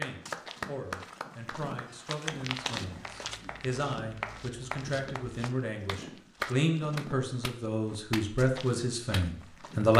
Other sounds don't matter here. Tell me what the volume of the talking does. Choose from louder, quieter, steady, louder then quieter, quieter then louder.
louder.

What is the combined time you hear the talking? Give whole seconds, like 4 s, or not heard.
10 s.